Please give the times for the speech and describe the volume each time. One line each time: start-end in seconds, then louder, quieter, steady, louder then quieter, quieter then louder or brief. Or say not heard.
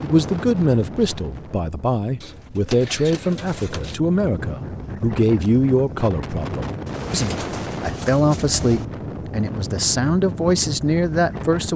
0.0-11.7 steady.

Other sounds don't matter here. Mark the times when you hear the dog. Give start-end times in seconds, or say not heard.
not heard.